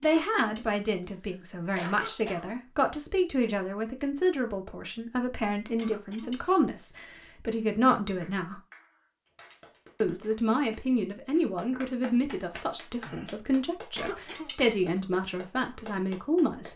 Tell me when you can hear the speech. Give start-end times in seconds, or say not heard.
0.0-8.6, 10.0-16.7.